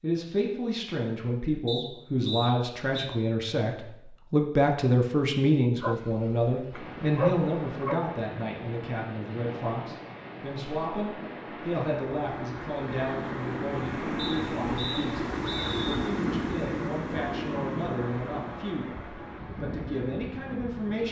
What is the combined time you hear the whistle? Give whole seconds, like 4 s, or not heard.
3 s.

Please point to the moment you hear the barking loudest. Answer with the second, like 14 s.
7 s.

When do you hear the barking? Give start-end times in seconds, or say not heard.
5.8-8.0.